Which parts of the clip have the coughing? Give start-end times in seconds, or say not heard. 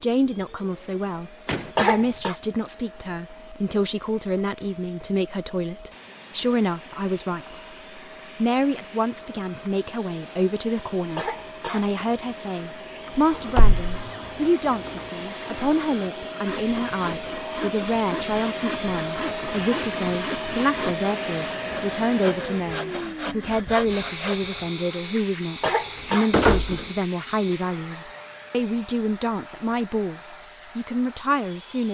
1.8-2.4, 11.2-12.3, 25.6-26.3.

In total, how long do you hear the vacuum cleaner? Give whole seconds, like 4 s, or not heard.
32 s.